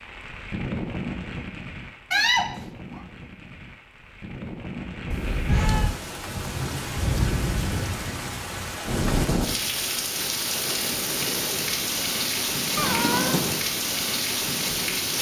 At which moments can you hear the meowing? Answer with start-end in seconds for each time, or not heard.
2.1-3.0, 5.1-6.0, 12.8-13.6.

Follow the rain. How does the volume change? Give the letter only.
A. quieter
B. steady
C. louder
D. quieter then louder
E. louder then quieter
C.